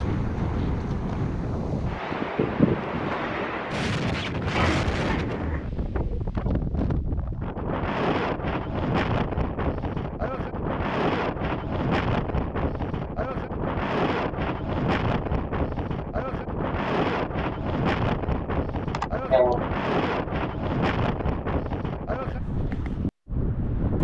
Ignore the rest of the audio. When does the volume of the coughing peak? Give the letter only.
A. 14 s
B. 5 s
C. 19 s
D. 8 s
C.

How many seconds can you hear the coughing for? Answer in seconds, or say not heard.
2 s.